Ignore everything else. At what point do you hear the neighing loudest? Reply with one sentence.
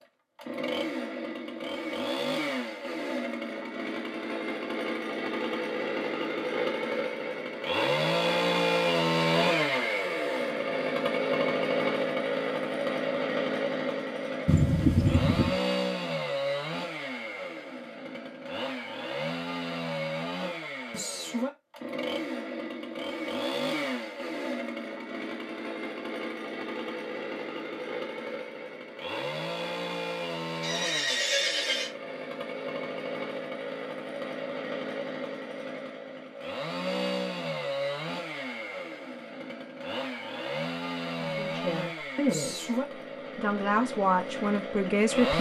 The loudest moment of the neighing is at 15 seconds.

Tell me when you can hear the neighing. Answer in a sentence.
You can hear the neighing from 14.4 to 15.6 s and from 30.6 to 31.9 s.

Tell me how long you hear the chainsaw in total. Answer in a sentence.
You can hear the chainsaw for 45 seconds altogether.